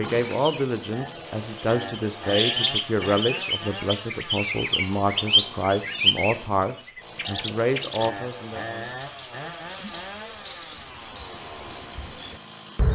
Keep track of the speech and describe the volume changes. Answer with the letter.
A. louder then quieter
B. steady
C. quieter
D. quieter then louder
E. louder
B.